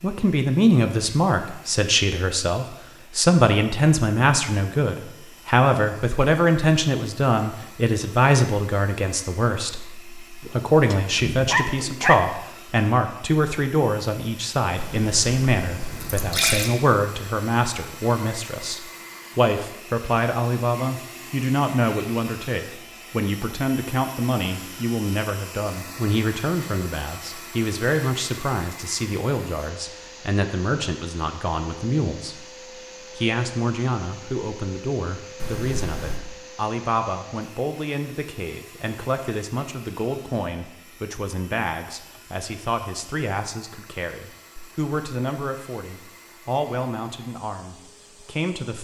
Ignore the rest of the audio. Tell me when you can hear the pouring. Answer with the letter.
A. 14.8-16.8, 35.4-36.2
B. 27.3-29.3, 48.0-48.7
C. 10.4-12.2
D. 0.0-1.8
A.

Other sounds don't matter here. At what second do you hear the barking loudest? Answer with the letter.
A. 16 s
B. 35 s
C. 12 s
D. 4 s
C.